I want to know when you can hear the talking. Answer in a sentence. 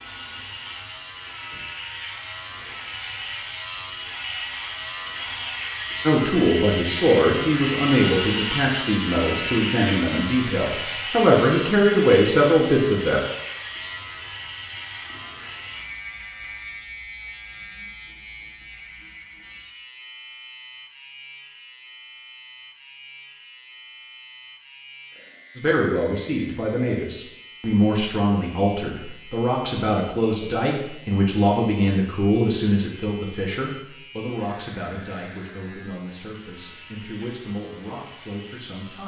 You can hear the talking from 6.0 to 13.2 s and from 25.6 to 39.0 s.